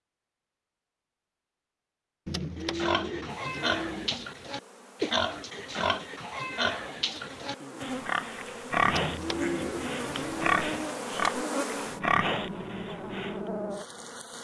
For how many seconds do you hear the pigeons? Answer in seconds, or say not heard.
4 s.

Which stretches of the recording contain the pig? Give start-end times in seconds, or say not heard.
2.6-13.4.